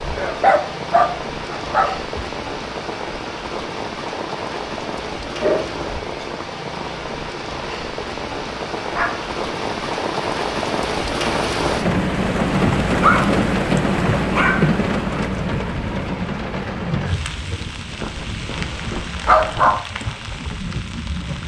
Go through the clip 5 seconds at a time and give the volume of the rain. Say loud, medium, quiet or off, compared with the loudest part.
medium, medium, loud, medium, medium.